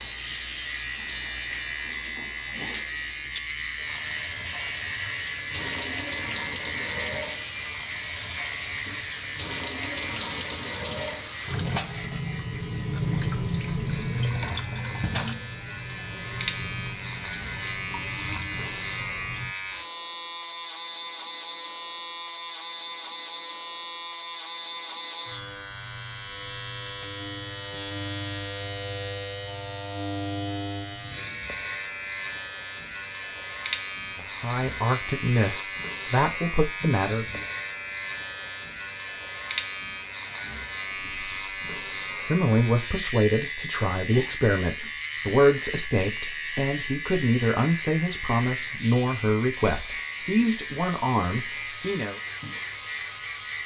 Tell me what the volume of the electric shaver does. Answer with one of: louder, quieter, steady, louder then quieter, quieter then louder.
steady.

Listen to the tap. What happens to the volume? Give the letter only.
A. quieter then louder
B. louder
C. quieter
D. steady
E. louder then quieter
E.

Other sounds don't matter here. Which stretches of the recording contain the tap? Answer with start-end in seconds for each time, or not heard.
0.0-19.6.